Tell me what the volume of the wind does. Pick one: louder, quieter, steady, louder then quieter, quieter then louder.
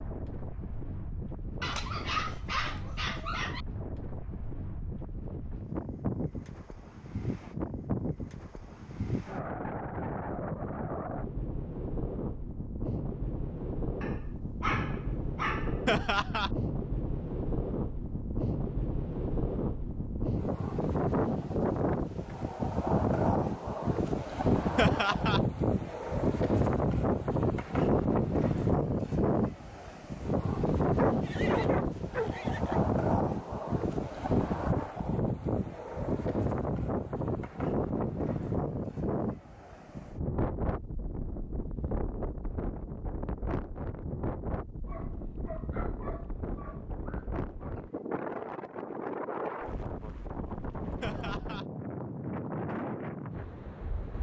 louder then quieter.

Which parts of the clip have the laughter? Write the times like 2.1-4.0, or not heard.
15.8-16.5, 24.8-25.4, 51.0-51.6.